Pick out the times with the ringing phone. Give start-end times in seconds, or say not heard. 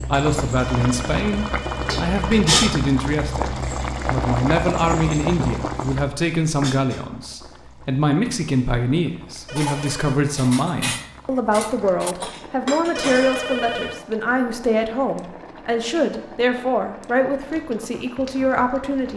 0.6-2.5, 9.4-10.2, 12.9-14.1.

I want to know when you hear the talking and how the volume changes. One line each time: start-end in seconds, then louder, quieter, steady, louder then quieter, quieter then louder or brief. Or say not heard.
0.0-19.1 steady.